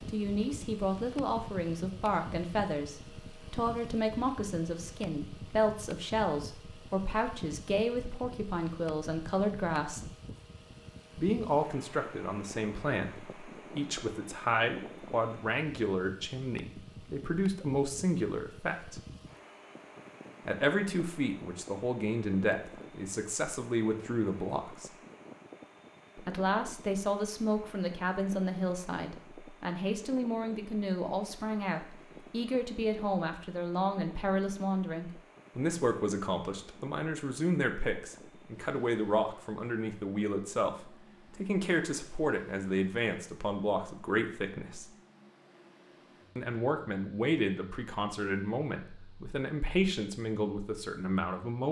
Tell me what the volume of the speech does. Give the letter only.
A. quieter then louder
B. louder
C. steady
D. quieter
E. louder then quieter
C.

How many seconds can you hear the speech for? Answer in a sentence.
The speech can be heard for 46 seconds in total.